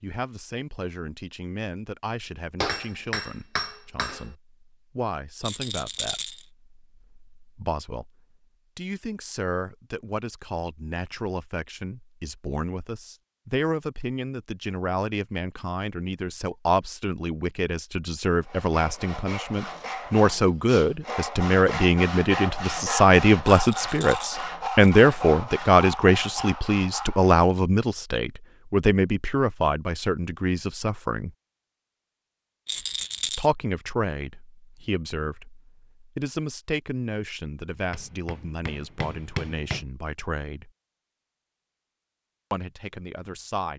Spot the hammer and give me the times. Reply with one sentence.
The hammer can be heard from 2.6 to 4.3 s and from 37.9 to 39.9 s.